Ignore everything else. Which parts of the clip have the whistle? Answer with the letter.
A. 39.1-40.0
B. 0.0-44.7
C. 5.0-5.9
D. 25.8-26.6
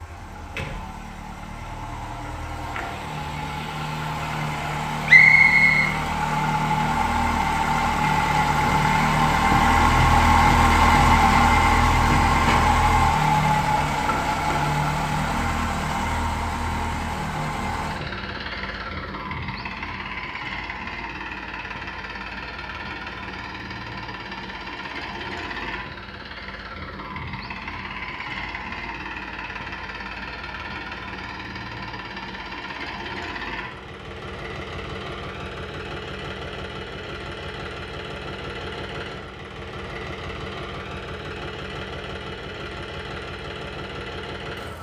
C.